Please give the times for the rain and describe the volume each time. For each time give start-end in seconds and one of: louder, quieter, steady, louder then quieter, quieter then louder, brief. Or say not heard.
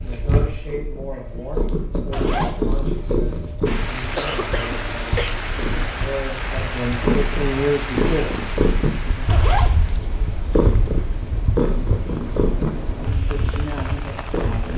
3.6-14.7 quieter then louder.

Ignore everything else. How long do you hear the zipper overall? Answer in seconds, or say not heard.
3 s.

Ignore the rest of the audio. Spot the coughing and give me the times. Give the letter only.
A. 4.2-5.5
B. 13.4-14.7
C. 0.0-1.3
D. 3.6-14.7
A.